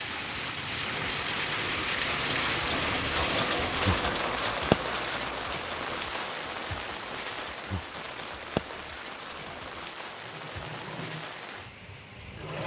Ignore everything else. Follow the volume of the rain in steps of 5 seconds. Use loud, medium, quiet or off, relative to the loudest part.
loud, medium, quiet.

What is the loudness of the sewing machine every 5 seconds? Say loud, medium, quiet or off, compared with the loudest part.
loud, medium, medium.